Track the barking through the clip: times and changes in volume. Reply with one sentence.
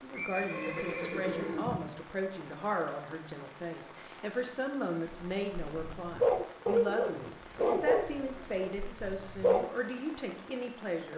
The barking can be heard from 5.1 to 9.7 s, getting louder then quieter.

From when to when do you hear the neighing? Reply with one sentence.
The neighing can be heard from 0.1 to 1.9 s.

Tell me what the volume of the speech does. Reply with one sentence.
The loudness of the speech stays about the same.